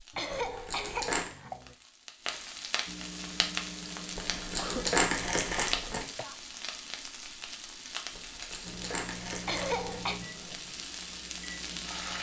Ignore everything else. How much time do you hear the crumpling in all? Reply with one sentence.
The crumpling can be heard for 5 seconds in total.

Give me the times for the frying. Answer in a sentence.
You can hear the frying from 0.0 to 12.1 s.